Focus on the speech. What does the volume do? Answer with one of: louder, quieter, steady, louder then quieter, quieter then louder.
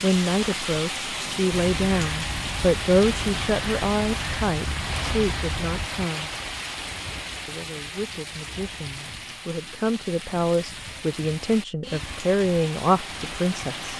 quieter then louder.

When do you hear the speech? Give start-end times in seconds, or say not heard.
0.0-6.3, 7.5-13.9.